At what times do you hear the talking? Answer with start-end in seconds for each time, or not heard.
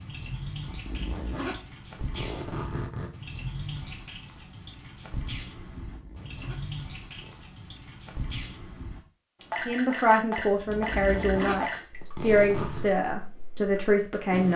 9.6-14.5.